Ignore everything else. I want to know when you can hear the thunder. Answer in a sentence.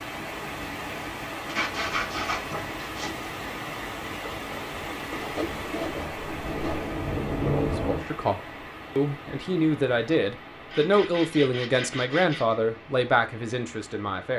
You can hear the thunder from 4.3 to 8.1 s.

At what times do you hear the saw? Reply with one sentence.
The saw can be heard from 1.4 to 3.2 s, from 5.1 to 6.9 s and from 10.7 to 12.6 s.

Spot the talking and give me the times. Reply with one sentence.
You can hear the talking from 7.5 to 14.3 s.